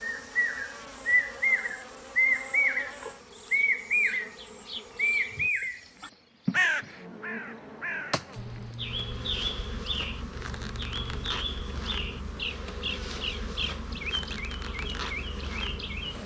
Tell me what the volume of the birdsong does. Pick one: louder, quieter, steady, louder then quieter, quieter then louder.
quieter.